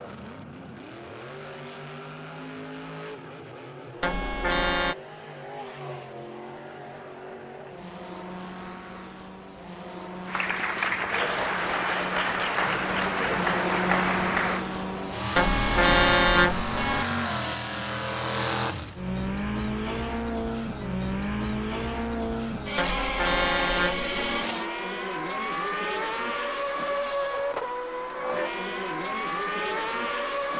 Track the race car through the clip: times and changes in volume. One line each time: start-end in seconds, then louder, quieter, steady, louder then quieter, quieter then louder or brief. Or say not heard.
0.0-30.5 louder.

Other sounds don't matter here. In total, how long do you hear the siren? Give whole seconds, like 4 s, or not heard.
not heard.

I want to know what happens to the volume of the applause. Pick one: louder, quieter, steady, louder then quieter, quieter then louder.
steady.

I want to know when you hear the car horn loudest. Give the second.
16 s.